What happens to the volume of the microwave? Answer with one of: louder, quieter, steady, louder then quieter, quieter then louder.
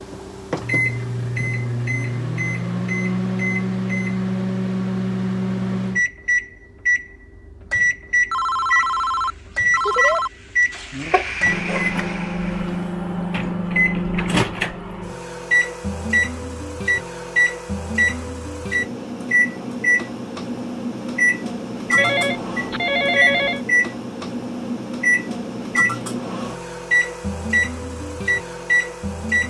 steady.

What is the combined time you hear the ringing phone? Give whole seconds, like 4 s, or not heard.
4 s.